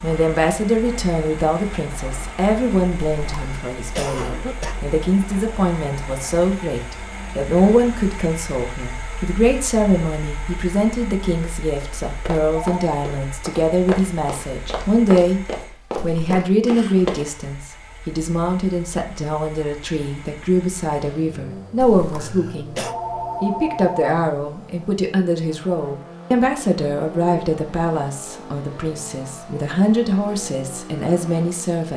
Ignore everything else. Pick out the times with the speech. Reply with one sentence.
You can hear the speech from 0.0 to 15.4 s, from 16.0 to 22.8 s and from 23.4 to 31.9 s.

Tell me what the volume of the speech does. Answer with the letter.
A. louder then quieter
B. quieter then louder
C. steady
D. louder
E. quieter
C.